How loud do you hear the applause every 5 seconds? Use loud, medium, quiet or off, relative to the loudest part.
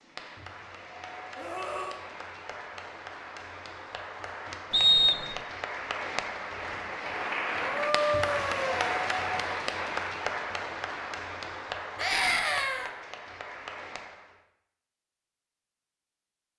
medium, loud, medium, off.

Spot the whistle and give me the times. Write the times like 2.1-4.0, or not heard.
4.7-5.3.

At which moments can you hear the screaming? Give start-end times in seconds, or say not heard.
1.4-2.0, 7.6-8.9, 11.9-12.9.